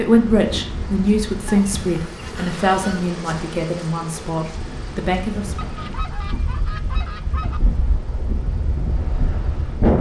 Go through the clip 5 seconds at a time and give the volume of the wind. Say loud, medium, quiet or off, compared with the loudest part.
medium, loud.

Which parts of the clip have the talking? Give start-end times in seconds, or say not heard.
0.0-5.6.